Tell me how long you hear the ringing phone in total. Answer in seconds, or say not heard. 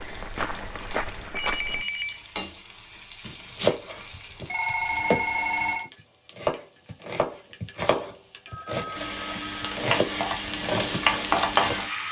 4 s.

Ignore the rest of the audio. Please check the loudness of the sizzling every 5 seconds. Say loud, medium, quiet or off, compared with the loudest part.
quiet, medium, loud.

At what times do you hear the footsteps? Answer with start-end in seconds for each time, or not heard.
0.0-1.9.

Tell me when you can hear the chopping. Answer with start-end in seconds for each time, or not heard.
3.2-11.8.